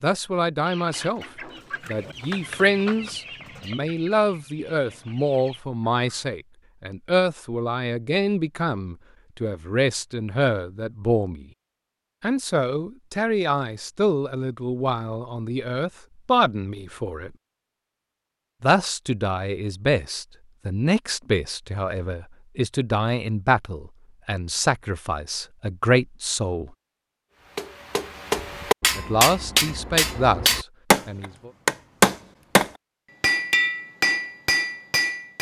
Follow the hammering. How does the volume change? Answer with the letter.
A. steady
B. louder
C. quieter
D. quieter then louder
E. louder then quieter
E.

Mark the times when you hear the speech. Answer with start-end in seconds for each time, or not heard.
0.0-1.2, 1.9-11.4, 12.2-17.3, 18.6-26.7, 28.9-31.5.